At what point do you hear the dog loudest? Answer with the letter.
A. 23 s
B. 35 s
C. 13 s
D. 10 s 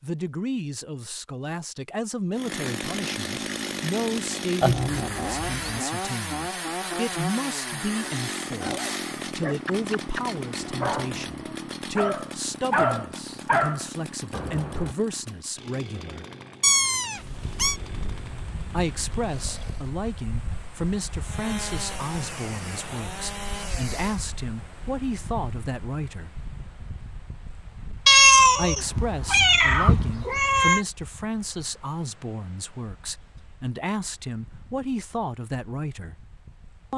C.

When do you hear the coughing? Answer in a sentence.
The coughing can't be heard in this clip.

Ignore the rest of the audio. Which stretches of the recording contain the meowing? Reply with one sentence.
You can hear the meowing from 4.6 to 5.8 s, from 16.6 to 17.8 s and from 28.1 to 30.9 s.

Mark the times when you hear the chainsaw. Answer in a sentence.
You can hear the chainsaw from 2.3 to 19.9 s and from 21.2 to 24.2 s.